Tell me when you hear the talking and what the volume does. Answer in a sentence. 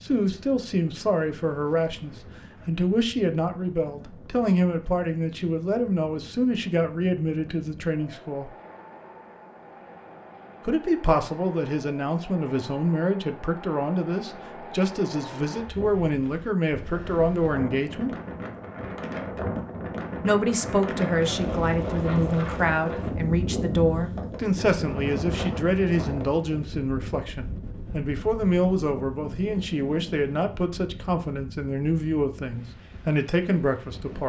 The talking can be heard from 0.0 to 8.5 s, at a steady volume; from 10.7 to 18.1 s, at a steady volume; and from 20.2 to 34.2 s, at a steady volume.